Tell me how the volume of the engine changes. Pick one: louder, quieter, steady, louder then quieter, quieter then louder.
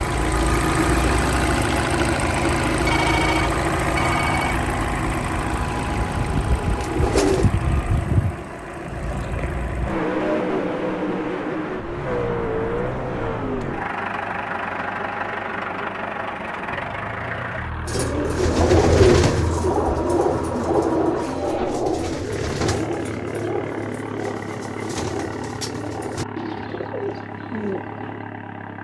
quieter.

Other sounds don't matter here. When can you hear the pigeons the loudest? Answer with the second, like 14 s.
19 s.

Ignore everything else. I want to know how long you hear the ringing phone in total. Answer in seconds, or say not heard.
2 s.